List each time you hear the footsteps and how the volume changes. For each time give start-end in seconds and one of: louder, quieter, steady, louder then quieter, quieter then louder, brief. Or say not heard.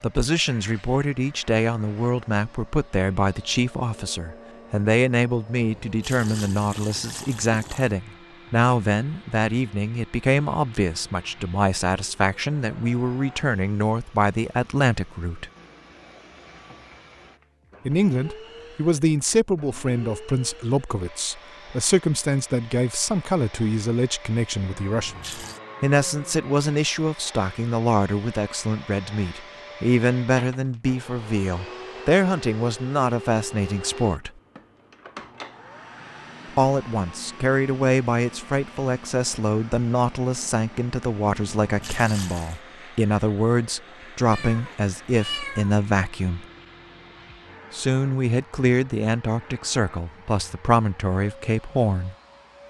not heard.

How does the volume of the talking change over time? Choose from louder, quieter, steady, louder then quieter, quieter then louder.
steady.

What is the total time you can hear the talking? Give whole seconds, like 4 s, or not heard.
46 s.